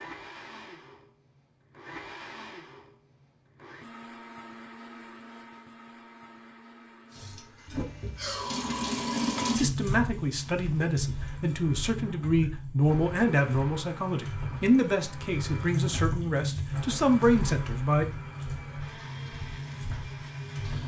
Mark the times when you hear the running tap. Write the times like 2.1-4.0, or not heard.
7.1-20.8.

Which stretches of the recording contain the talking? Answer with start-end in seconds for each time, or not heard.
9.6-18.1.